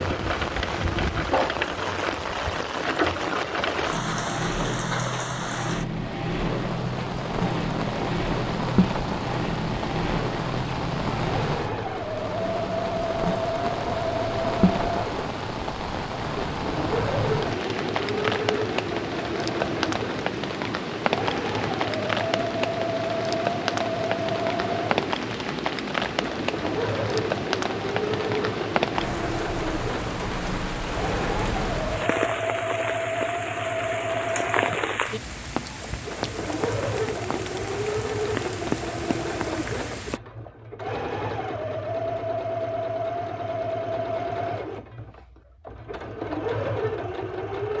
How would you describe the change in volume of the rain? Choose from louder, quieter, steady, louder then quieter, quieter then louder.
steady.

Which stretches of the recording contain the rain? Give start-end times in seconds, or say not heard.
0.0-40.2.